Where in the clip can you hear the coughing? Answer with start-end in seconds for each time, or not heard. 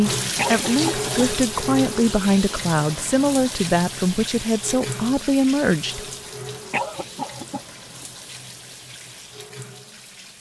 0.3-1.2, 6.7-8.1.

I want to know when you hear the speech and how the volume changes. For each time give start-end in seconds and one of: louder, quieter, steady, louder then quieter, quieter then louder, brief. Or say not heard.
0.0-6.0 steady.